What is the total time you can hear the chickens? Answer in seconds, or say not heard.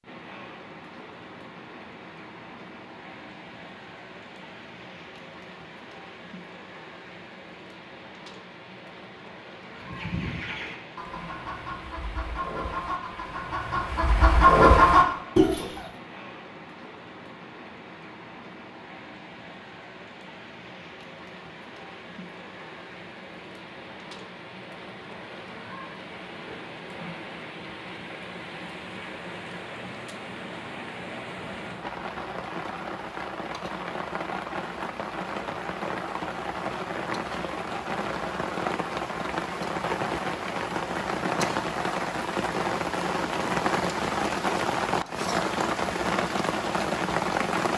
6 s.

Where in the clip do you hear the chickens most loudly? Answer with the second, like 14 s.
15 s.